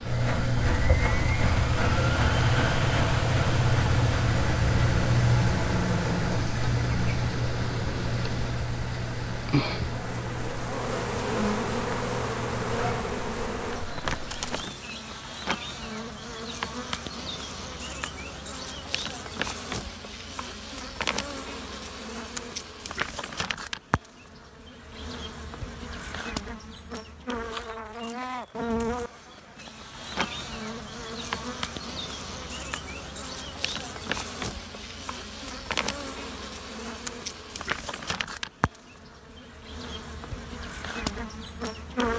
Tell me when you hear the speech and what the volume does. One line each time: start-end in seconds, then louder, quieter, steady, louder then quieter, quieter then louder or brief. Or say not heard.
not heard.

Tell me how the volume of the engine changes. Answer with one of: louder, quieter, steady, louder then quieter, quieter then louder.
quieter.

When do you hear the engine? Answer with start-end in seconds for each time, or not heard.
0.0-14.5.